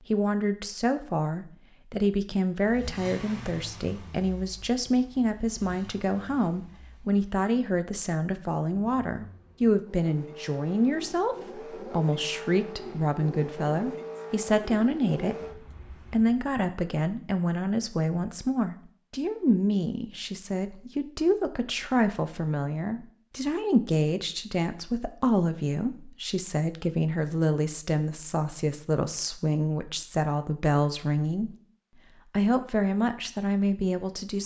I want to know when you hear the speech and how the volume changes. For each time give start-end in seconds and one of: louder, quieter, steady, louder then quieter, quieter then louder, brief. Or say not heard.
0.1-31.5 steady
32.3-34.4 brief.